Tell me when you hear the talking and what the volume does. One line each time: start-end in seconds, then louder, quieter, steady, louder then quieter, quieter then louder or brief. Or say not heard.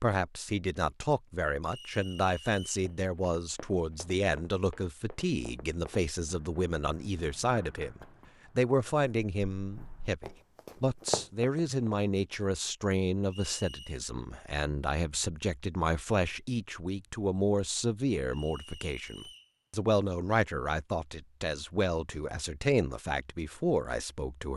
0.0-24.5 steady.